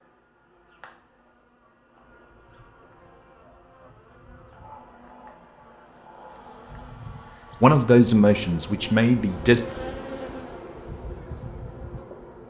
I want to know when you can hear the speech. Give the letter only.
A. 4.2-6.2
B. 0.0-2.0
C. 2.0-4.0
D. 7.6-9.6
D.